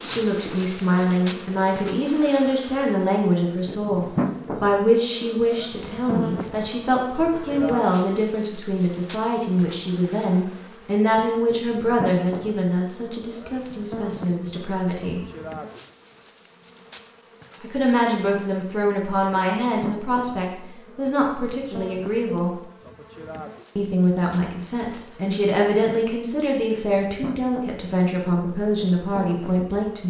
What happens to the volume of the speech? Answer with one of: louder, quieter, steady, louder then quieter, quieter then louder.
steady.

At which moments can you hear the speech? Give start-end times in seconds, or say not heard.
0.0-15.2, 17.6-22.5, 23.8-30.0.